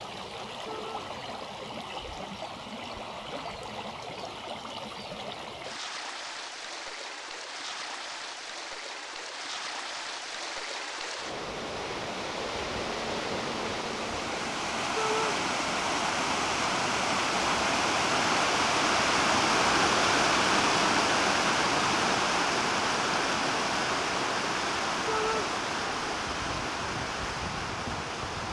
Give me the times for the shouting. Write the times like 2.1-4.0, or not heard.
0.7-1.1, 14.9-15.3, 25.1-25.5.